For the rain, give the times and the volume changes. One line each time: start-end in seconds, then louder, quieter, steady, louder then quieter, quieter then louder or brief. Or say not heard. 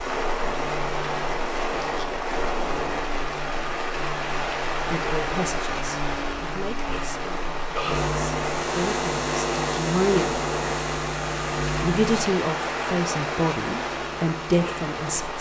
0.0-15.3 steady.